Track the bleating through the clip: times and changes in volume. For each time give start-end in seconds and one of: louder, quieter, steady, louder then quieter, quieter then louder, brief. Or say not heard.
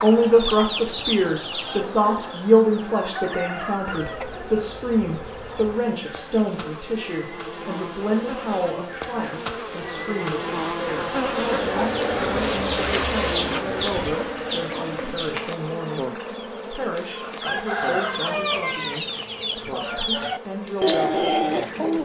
not heard.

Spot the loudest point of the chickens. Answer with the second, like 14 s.
21 s.